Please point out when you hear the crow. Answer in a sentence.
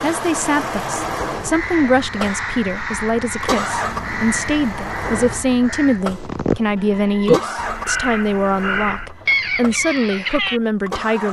You can hear the crow from 1.5 to 10.6 s.